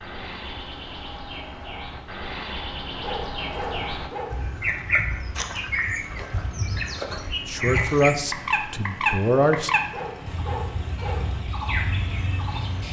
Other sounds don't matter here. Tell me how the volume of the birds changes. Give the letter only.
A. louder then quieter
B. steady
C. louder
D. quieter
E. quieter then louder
A.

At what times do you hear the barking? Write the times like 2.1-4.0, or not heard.
3.0-4.3, 9.9-11.2.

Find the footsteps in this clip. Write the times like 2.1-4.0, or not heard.
not heard.